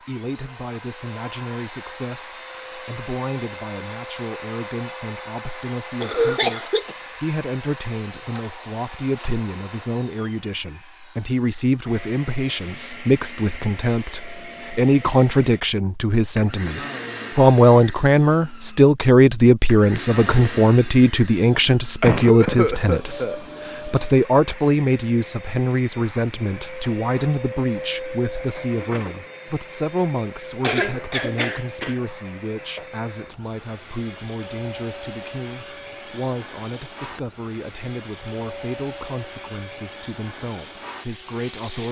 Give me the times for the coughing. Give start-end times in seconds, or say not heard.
6.0-7.0, 22.0-23.4, 30.6-32.0.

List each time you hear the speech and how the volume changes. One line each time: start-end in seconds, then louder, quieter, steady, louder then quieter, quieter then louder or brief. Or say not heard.
0.1-41.8 louder then quieter.